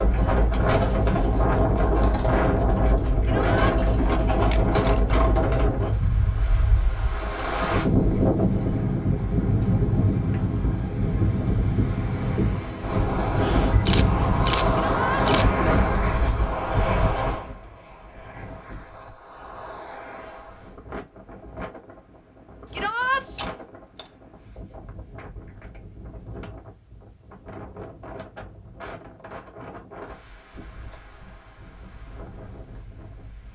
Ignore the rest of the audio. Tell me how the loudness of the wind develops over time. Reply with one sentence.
The loudness of the wind goes down.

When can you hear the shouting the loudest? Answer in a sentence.
The volume of the shouting peaks at 23 seconds.